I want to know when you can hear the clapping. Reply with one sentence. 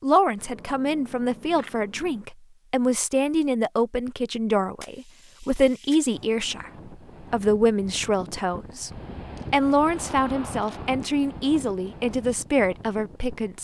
You can't hear the clapping here.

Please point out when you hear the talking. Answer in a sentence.
You can hear the talking from 0.0 to 6.7 s, from 7.3 to 8.9 s and from 9.5 to 13.6 s.